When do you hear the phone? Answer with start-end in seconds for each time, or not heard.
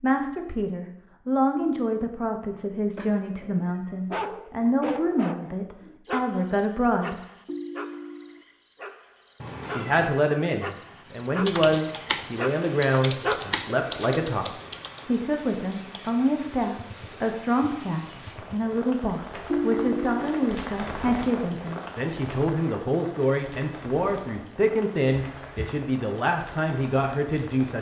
7.5-8.4, 19.5-20.2.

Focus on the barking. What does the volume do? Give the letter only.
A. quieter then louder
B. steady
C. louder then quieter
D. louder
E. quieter
A.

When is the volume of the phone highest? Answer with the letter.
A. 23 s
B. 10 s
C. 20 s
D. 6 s
C.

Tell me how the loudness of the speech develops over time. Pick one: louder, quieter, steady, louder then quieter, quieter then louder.
steady.